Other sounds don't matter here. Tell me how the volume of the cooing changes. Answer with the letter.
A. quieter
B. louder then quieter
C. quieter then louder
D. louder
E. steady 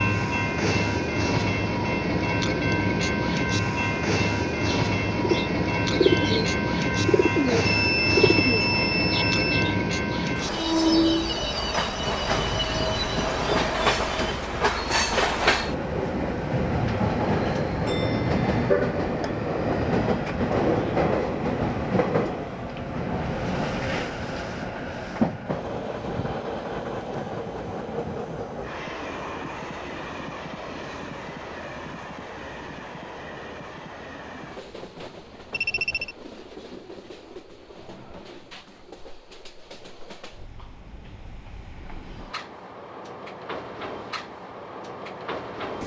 B.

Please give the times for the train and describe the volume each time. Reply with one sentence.
The train can be heard from 0.0 to 45.8 s, getting quieter.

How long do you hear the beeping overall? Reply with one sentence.
You can hear the beeping for 3 seconds altogether.